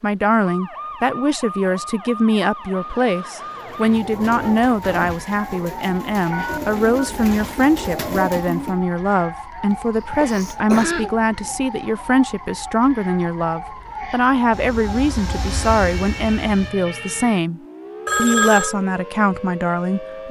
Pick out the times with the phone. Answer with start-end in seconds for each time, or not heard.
6.3-7.2, 18.1-18.8.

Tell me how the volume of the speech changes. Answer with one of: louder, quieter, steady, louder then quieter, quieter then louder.
steady.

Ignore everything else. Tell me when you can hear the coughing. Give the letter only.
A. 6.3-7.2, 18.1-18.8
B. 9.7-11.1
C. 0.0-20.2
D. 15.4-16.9
B.